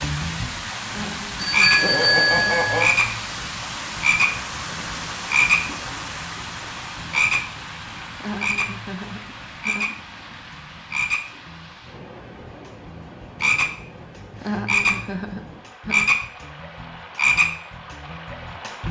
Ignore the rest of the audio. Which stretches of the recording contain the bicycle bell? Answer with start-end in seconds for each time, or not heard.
1.4-3.0.